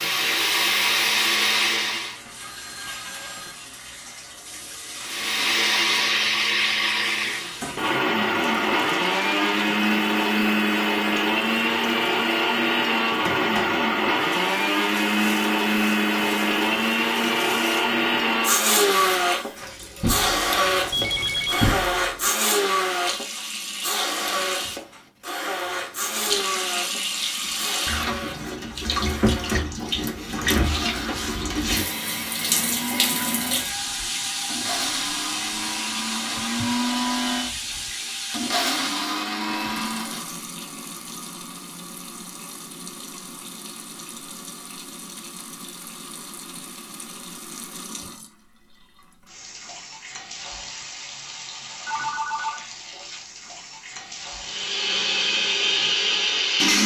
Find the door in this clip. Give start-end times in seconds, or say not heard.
20.0-22.1.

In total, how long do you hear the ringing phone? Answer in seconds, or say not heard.
3 s.